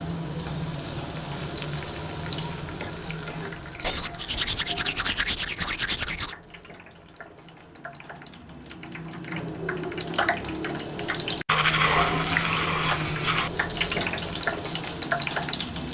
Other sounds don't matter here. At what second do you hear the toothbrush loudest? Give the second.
12 s.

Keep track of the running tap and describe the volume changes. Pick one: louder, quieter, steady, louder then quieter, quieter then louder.
quieter then louder.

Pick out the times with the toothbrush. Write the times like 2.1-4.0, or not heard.
3.8-6.3, 11.4-13.5.